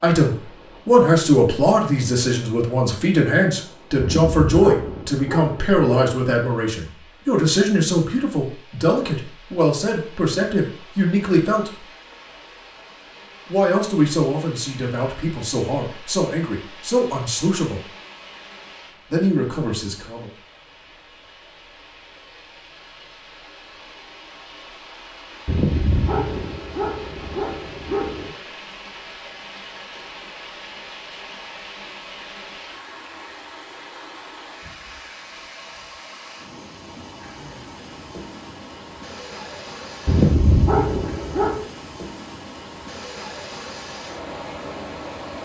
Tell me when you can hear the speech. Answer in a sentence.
The speech can be heard from 0.0 to 11.7 s, from 13.4 to 17.9 s and from 19.1 to 20.3 s.